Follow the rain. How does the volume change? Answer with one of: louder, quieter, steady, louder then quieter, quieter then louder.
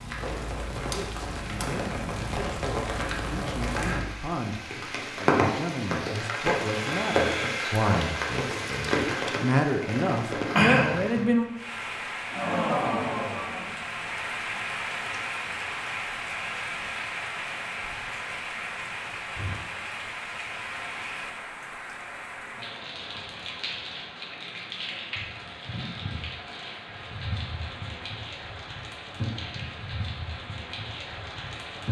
quieter.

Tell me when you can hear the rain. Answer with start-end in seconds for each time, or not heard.
0.0-31.8.